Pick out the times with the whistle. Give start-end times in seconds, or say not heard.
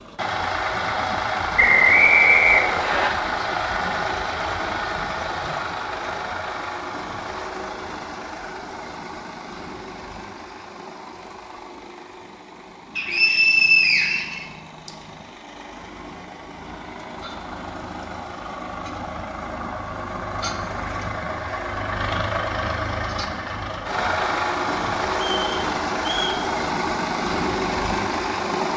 1.6-3.1, 12.9-14.9, 25.3-26.4.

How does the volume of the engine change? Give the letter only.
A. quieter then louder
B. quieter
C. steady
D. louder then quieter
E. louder
A.